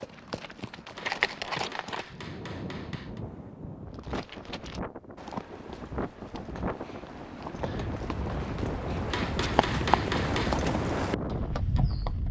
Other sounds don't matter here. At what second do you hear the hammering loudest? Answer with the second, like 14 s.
10 s.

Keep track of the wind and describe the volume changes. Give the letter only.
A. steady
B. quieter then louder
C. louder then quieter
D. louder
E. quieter
D.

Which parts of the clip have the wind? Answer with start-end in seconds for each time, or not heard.
2.0-12.2.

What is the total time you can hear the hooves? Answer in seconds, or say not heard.
10 s.